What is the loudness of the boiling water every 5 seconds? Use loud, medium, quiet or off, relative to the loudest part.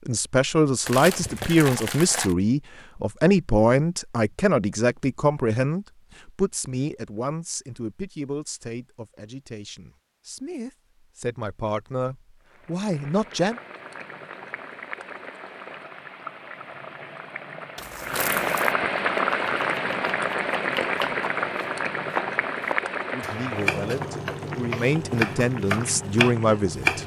off, off, quiet, loud, loud, medium.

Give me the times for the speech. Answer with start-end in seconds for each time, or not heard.
0.1-13.6, 23.1-27.0.